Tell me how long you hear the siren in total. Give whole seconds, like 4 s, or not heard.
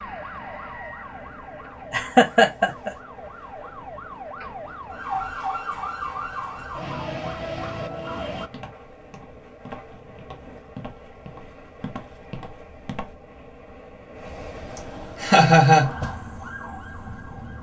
10 s.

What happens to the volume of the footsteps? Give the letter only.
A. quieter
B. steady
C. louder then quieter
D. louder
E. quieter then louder
D.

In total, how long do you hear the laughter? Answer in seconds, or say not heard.
2 s.